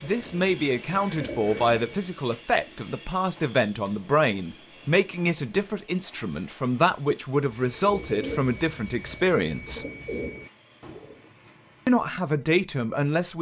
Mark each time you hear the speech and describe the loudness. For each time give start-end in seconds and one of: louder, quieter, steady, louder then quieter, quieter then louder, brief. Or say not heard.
0.0-9.8 steady
11.8-13.3 brief.